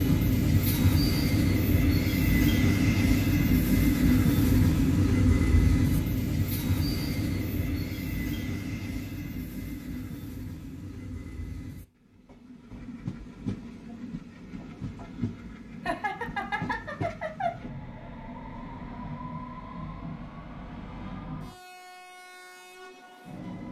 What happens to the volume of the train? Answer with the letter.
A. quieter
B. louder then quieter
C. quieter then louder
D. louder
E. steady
A.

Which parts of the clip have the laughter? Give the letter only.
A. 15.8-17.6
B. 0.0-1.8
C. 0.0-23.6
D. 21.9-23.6
A.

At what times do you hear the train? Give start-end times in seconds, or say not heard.
0.0-23.6.